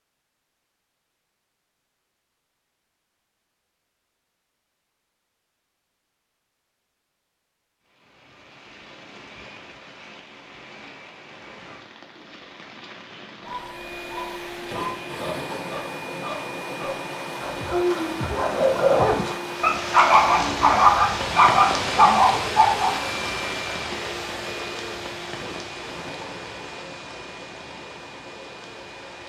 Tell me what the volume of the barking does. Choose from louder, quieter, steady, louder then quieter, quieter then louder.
louder.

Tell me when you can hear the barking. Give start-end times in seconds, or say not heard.
13.4-22.9.